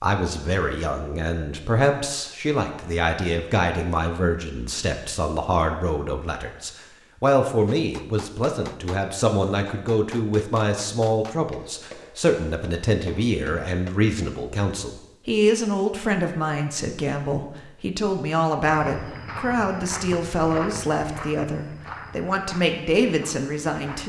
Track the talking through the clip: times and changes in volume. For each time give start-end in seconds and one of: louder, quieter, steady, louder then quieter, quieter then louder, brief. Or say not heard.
0.0-24.0 steady.